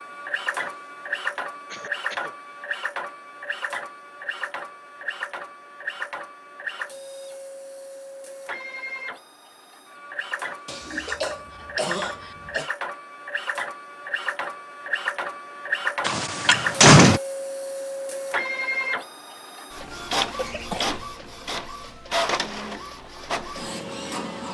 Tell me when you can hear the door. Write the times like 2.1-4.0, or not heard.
16.1-17.2.